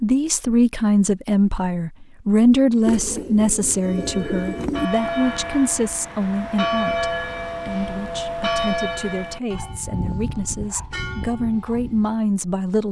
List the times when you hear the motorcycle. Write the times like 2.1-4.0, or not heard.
not heard.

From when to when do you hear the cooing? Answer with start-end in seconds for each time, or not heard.
2.9-4.9.